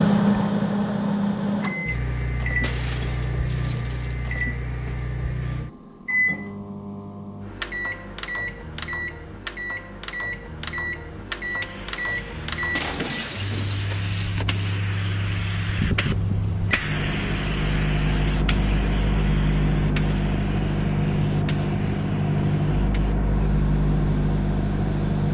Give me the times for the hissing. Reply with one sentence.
You can hear the hissing from 11.1 to 25.2 s.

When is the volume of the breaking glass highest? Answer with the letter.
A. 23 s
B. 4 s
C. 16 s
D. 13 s
D.